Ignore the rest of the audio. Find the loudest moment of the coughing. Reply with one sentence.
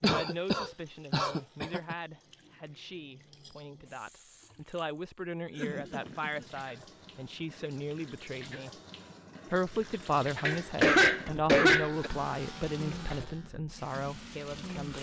The volume of the coughing peaks at 11 seconds.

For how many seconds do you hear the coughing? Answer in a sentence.
The coughing can be heard for 5 seconds in total.